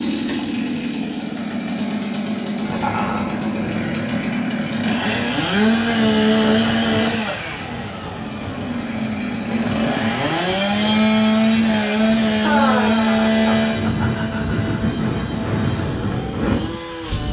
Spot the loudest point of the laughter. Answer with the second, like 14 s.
13 s.